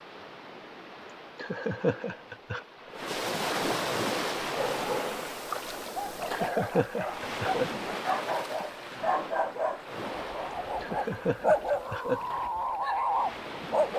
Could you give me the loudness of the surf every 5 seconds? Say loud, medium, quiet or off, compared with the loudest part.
loud, loud, medium.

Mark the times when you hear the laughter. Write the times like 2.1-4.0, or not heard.
1.4-2.6, 6.3-7.7, 10.8-12.2.